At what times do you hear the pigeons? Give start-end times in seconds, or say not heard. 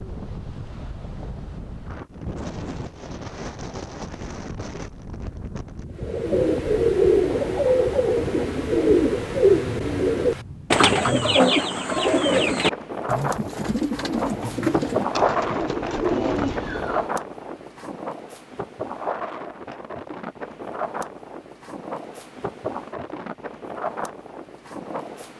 6.0-17.1.